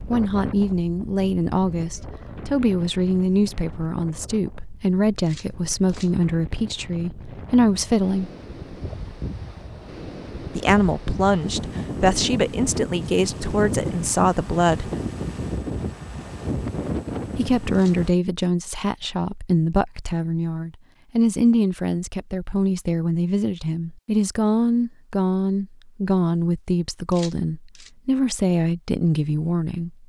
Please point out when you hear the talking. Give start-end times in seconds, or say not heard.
0.0-8.3, 10.6-14.9, 17.4-29.9.